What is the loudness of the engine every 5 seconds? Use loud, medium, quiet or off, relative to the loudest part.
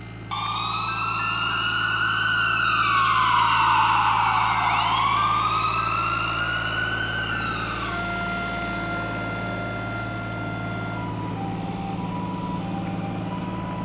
medium, loud, loud.